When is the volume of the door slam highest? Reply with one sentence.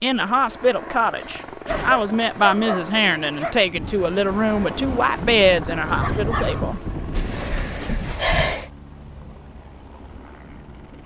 The volume of the door slam peaks at 8 seconds.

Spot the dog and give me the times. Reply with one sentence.
You can hear the dog from 1.6 to 3.5 s and from 5.8 to 6.7 s.